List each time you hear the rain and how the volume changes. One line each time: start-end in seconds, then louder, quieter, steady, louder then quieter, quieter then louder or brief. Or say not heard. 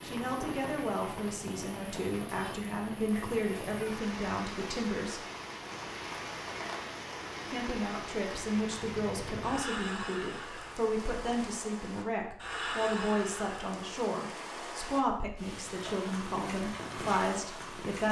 0.0-18.0 steady.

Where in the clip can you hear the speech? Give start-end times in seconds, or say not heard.
0.0-5.2, 7.5-18.0.